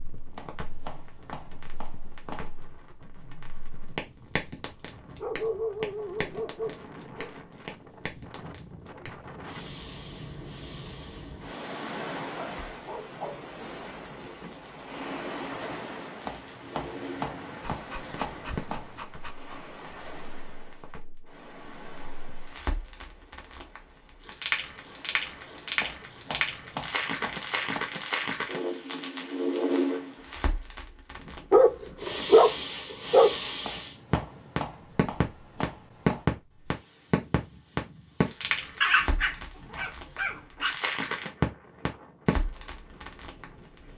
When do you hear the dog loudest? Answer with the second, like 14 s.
32 s.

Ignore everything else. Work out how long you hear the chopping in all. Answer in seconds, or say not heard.
10 s.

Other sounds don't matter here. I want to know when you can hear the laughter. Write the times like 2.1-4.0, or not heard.
not heard.